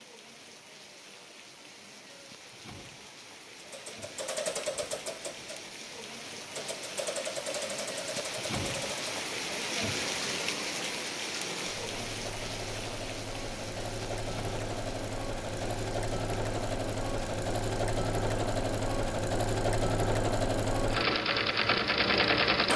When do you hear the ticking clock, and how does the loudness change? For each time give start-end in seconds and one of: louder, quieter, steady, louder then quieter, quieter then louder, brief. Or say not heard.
not heard.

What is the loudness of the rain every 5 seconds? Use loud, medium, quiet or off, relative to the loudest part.
medium, loud, loud, medium, quiet.